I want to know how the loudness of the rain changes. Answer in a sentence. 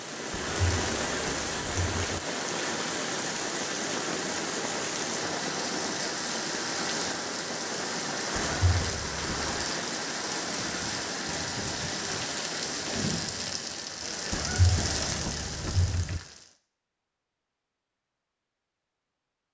The loudness of the rain stays about the same.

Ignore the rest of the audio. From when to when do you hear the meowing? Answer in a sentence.
You can hear the meowing from 0.3 to 2.2 s, from 8.3 to 9.7 s and from 14.3 to 16.2 s.